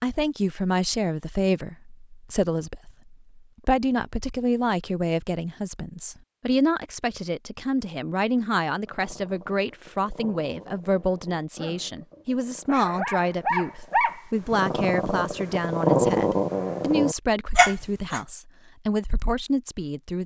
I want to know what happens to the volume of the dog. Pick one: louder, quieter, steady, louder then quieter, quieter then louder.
louder.